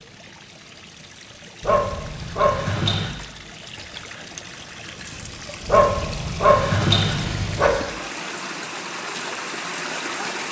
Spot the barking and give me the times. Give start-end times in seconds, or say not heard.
1.6-3.1, 5.7-7.7.